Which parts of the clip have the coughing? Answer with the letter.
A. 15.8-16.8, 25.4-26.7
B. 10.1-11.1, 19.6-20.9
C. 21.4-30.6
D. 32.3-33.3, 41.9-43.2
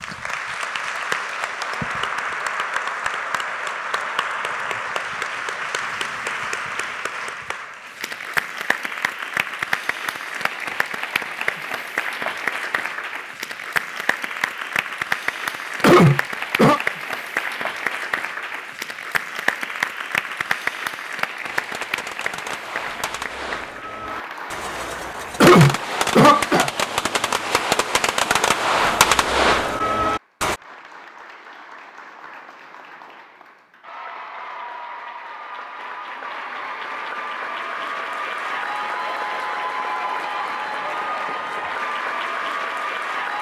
A.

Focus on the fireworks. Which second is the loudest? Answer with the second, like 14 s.
29 s.